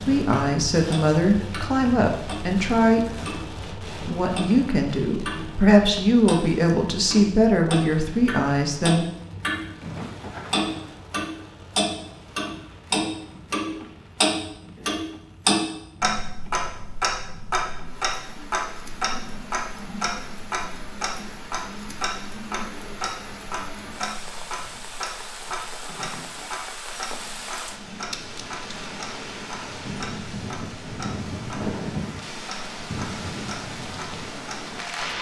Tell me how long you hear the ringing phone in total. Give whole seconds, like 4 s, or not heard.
3 s.